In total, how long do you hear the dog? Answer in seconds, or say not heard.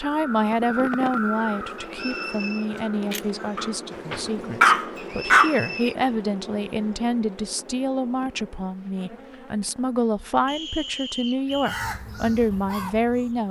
2 s.